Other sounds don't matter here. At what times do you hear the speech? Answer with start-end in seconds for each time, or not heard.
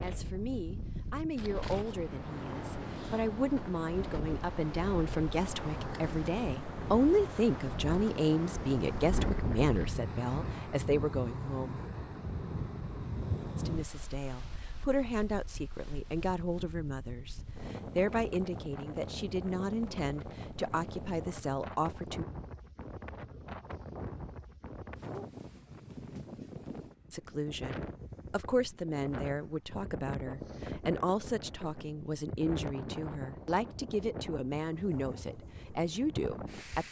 0.0-11.8, 13.6-22.2, 27.1-36.8.